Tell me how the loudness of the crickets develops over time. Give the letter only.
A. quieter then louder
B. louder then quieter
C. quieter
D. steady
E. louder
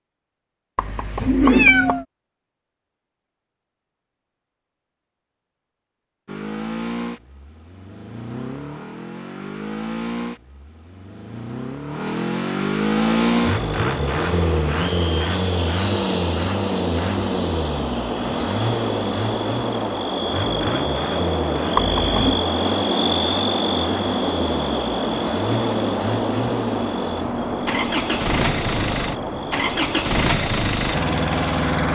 B.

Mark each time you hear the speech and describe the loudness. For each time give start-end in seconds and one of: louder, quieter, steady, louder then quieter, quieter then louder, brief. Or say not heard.
not heard.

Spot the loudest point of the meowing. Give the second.
2 s.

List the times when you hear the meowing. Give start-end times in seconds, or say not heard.
0.8-2.0, 21.8-22.4.